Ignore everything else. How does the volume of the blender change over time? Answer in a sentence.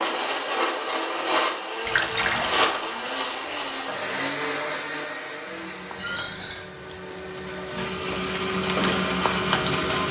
The volume of the blender goes down, then up.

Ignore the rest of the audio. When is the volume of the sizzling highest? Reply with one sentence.
The loudest moment of the sizzling is at 9 seconds.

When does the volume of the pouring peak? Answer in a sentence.
The volume of the pouring peaks at 2 seconds.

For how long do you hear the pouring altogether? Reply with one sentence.
You can hear the pouring for 2 seconds altogether.